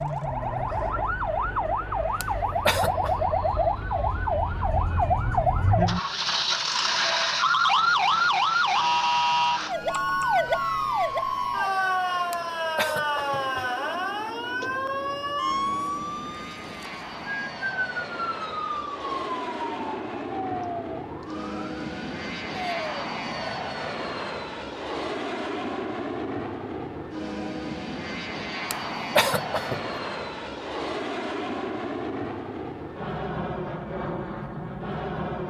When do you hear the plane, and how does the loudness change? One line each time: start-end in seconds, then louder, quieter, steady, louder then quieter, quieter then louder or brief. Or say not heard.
0.0-35.4 louder.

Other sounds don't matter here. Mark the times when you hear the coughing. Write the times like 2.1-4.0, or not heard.
2.2-3.1, 12.3-13.7, 28.7-29.8.